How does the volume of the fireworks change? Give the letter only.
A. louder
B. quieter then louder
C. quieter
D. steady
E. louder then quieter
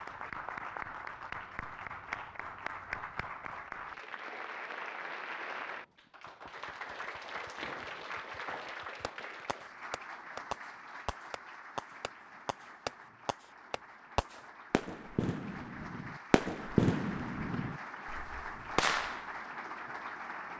A.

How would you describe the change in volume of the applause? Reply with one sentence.
The volume of the applause goes down, then up.